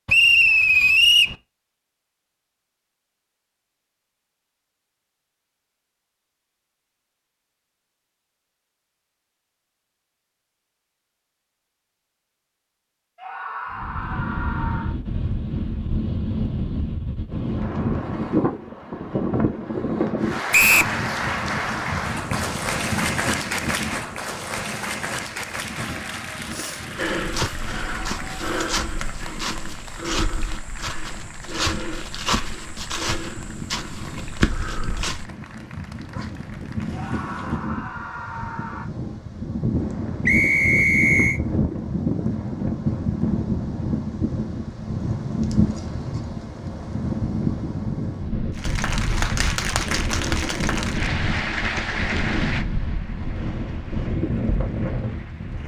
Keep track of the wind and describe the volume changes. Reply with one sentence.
The loudness of the wind goes down, then up.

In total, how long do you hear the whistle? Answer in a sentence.
You can hear the whistle for 3 seconds altogether.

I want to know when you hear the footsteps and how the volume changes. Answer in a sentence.
You can hear the footsteps from 26.9 to 35.2 s, at a steady volume.